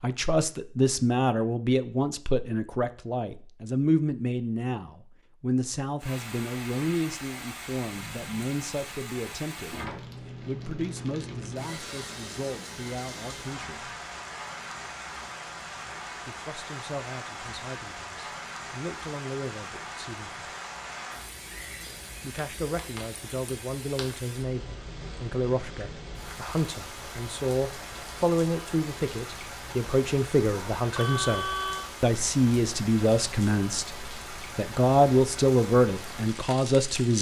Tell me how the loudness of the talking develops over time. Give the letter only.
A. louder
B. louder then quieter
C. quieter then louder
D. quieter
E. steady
C.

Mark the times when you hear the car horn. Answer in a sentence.
You can hear the car horn from 30.4 to 31.9 s.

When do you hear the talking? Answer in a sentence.
You can hear the talking from 0.0 to 13.9 s, from 16.2 to 20.4 s and from 22.2 to 37.1 s.